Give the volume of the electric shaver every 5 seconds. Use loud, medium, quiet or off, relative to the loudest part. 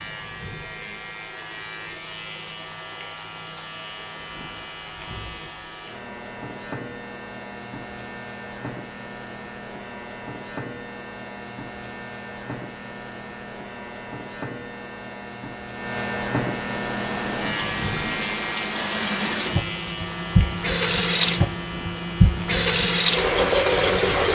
medium, medium, medium, loud, medium.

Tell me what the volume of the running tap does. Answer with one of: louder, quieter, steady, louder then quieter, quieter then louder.
louder.